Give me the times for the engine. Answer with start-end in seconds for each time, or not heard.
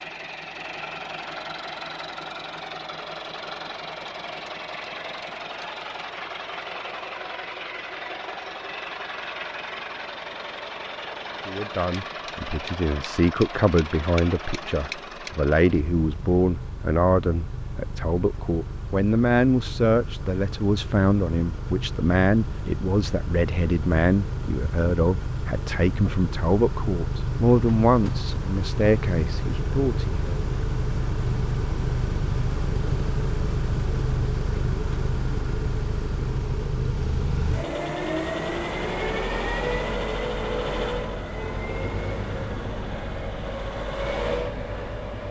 0.0-45.2.